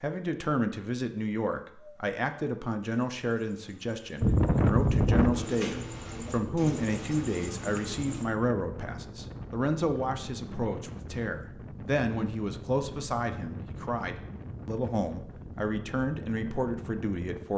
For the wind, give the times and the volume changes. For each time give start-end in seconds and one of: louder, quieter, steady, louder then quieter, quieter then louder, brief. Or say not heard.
4.2-17.5 quieter.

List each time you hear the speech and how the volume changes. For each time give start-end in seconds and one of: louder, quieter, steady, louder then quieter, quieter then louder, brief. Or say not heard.
0.0-17.5 steady.